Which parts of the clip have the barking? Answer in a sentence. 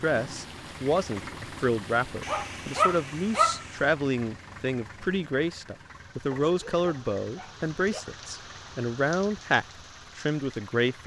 You can hear the barking from 2.2 to 3.6 s and from 6.5 to 8.1 s.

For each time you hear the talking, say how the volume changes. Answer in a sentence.
The talking can be heard from 0.0 to 11.0 s, at a steady volume.